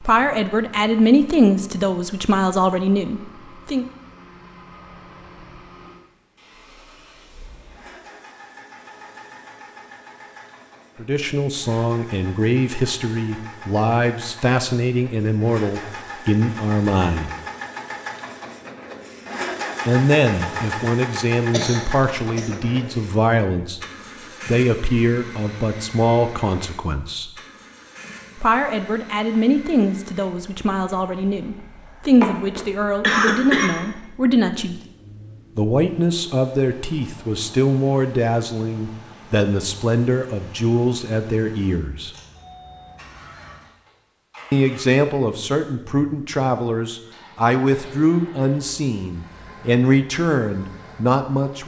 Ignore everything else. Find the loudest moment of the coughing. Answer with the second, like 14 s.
33 s.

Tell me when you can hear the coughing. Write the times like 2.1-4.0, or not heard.
21.5-22.5, 32.2-33.7.